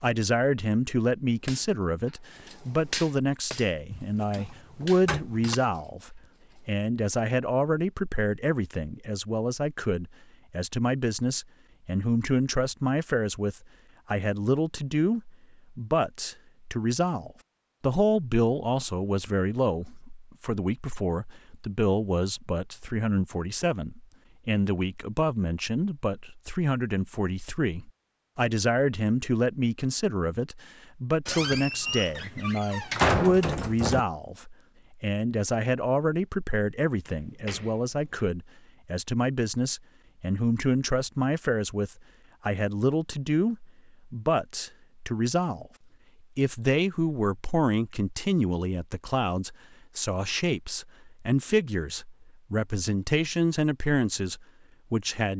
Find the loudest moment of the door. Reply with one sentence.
The volume of the door peaks at 33 seconds.